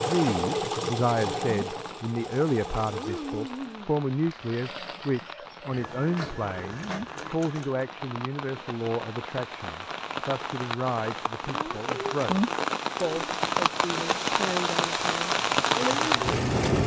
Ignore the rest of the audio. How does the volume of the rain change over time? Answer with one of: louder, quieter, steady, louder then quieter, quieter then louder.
louder.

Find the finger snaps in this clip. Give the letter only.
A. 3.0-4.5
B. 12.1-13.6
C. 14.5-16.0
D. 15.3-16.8
A.